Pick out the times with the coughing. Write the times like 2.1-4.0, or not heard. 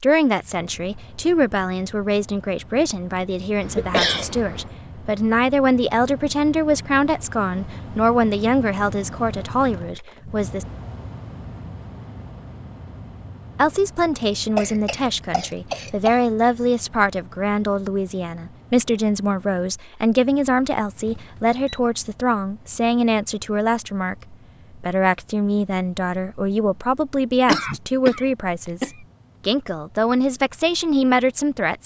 3.6-4.8, 14.6-16.2, 27.4-28.9.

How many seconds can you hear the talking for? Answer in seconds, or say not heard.
29 s.